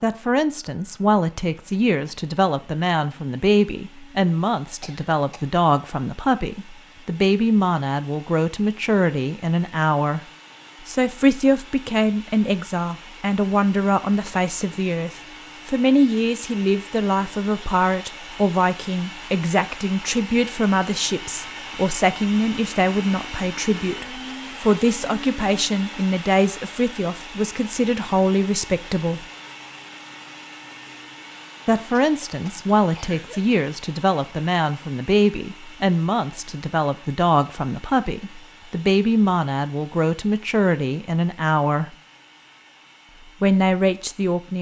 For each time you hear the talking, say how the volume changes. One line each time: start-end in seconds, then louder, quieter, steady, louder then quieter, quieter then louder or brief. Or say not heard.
0.0-10.2 steady
10.8-29.2 steady
31.6-42.0 steady
43.4-44.5 brief.